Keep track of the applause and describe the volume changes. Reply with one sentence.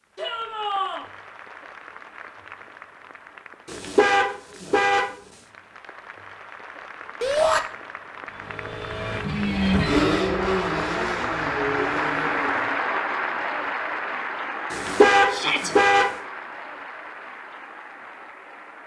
The loudness of the applause goes up, then down.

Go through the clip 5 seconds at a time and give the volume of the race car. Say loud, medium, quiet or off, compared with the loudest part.
off, loud, loud, off.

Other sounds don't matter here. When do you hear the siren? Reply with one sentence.
You can't hear the siren here.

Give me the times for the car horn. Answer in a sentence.
The car horn can be heard from 3.6 to 5.2 s and from 14.7 to 16.1 s.